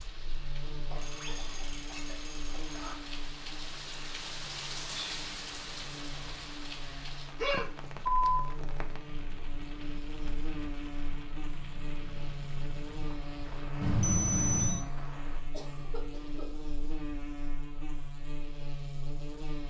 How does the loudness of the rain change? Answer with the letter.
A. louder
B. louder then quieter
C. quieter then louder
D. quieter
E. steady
B.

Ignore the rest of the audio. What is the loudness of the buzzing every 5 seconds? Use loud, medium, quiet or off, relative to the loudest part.
medium, medium, loud, loud.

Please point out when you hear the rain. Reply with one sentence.
The rain can be heard from 0.0 to 15.4 s.